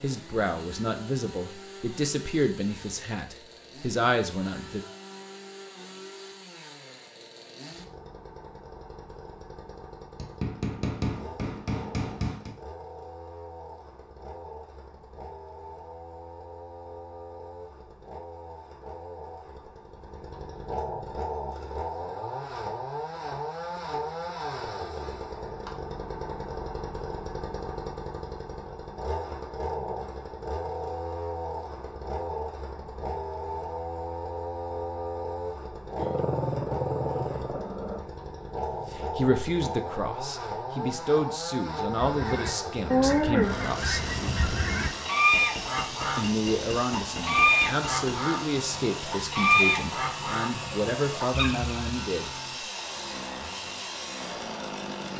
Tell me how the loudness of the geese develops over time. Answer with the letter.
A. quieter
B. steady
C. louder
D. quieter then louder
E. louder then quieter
A.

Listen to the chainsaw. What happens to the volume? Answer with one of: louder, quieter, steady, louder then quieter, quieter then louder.
louder.